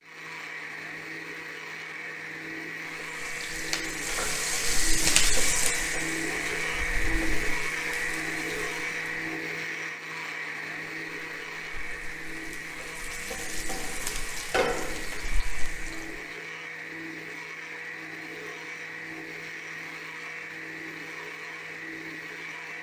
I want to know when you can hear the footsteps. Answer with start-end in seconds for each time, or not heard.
not heard.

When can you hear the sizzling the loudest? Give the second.
5 s.